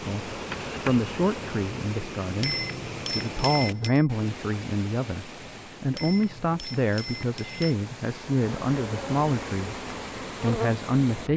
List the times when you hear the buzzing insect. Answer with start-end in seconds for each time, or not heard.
0.0-1.8, 8.4-11.3.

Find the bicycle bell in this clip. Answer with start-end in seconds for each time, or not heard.
2.4-4.0, 6.0-7.8.